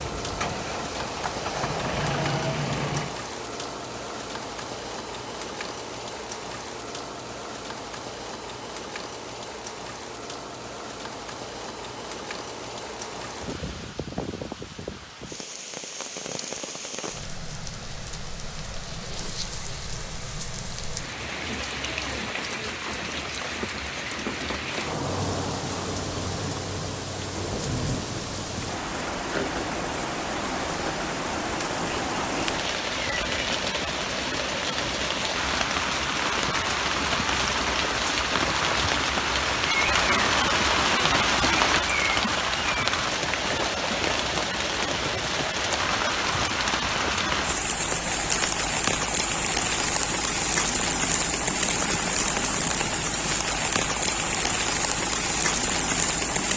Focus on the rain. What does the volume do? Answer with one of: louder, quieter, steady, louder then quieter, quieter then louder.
louder.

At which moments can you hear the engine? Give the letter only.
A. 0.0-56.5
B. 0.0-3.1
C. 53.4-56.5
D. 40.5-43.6
B.